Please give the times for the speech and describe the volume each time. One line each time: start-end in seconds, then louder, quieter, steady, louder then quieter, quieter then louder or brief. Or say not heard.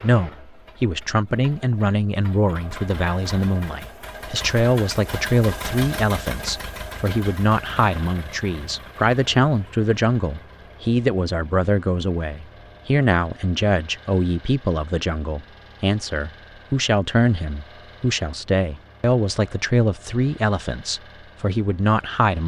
0.0-22.4 steady.